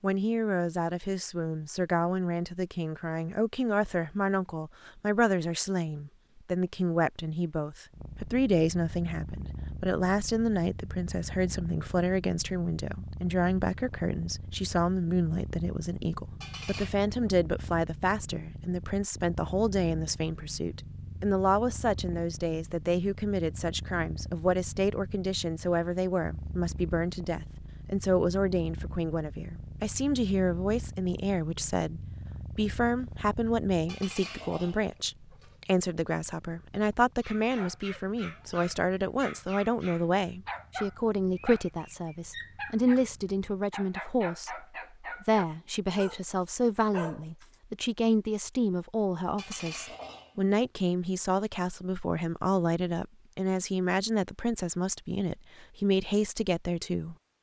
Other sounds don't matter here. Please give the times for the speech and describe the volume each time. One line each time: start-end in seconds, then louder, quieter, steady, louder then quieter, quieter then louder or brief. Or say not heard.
0.0-57.1 steady.